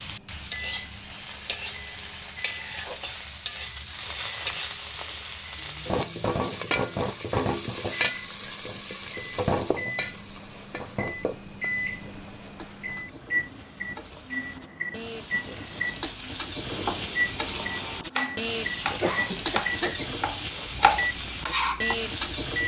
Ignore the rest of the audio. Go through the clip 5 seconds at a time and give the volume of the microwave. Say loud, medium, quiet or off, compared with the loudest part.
quiet, medium, loud, loud, loud.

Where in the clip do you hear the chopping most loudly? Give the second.
21 s.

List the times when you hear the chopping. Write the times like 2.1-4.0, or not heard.
16.6-21.9.